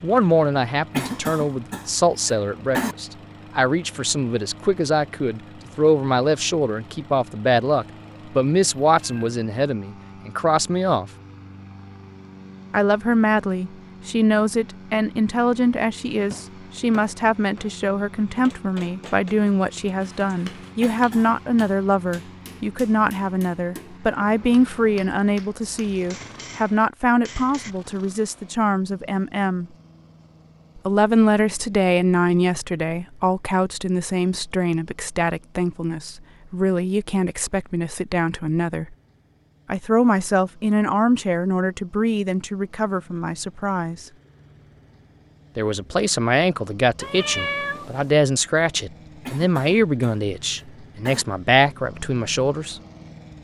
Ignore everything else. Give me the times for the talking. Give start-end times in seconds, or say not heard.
0.0-11.1, 12.7-29.7, 30.8-39.0, 39.6-44.0, 45.5-52.8.